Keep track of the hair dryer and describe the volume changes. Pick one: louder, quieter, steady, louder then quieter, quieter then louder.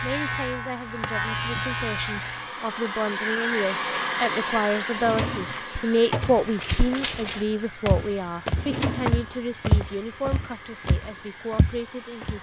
louder then quieter.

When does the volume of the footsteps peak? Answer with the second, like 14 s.
10 s.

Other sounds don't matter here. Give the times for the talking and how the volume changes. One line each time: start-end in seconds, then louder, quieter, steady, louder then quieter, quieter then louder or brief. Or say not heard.
0.0-12.3 louder then quieter.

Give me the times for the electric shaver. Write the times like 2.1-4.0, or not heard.
0.0-2.5.